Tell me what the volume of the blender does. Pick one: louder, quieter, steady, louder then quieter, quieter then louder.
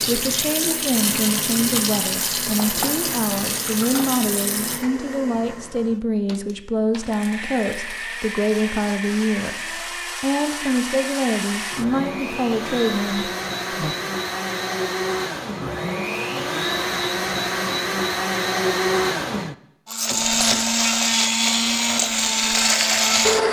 louder.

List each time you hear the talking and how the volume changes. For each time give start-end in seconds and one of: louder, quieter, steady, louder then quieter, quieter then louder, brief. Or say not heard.
0.1-13.9 steady.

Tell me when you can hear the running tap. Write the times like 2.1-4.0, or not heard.
0.0-4.8, 20.2-23.1.